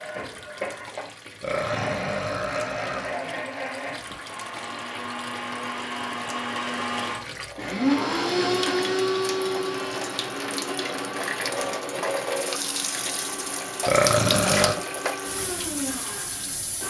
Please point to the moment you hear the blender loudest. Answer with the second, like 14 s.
8 s.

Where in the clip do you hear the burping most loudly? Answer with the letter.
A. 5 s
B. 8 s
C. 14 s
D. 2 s
C.